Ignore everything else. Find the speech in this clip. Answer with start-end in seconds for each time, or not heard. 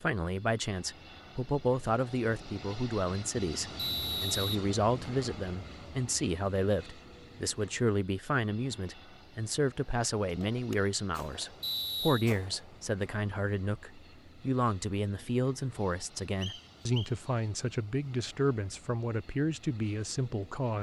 0.0-20.7.